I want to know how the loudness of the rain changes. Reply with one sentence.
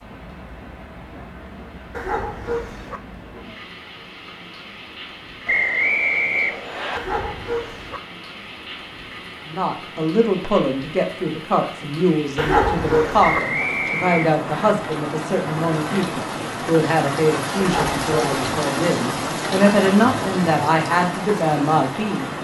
The loudness of the rain goes up.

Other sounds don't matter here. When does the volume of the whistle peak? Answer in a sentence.
The volume of the whistle peaks at 6 seconds.